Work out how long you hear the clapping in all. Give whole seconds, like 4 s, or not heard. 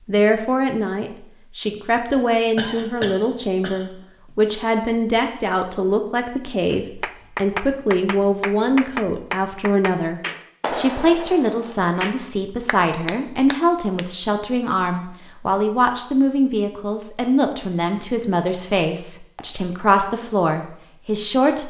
7 s.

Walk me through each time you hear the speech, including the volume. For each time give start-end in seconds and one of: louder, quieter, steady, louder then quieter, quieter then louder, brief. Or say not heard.
0.1-21.6 steady.